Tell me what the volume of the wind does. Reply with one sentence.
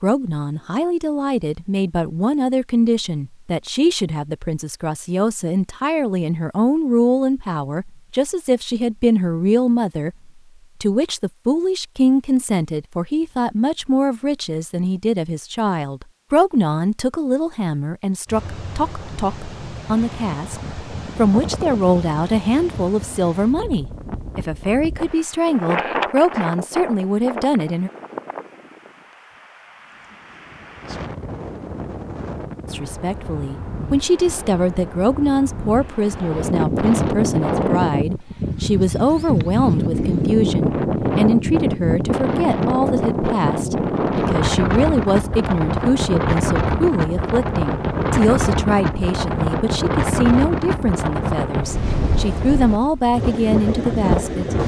The loudness of the wind goes up.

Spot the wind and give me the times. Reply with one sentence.
You can hear the wind from 18.2 to 54.6 s.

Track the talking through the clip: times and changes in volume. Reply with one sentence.
The talking can be heard from 0.0 to 27.9 s, at a steady volume; and from 32.7 to 54.6 s, at a steady volume.